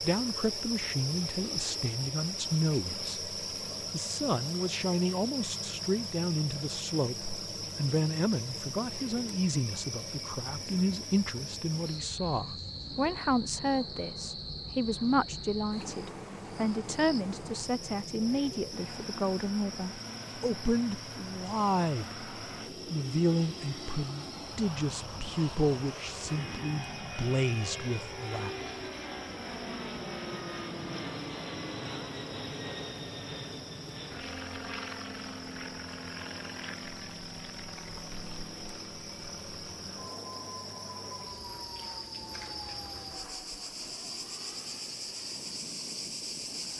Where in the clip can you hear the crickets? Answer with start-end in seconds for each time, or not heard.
0.0-46.7.